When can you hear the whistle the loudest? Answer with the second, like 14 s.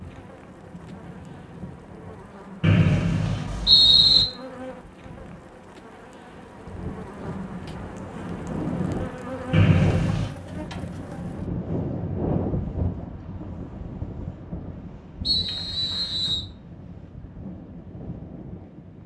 4 s.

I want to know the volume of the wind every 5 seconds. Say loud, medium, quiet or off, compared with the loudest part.
quiet, loud, loud, medium.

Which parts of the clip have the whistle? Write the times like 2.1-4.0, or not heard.
2.6-4.2, 9.5-10.3, 15.2-16.4.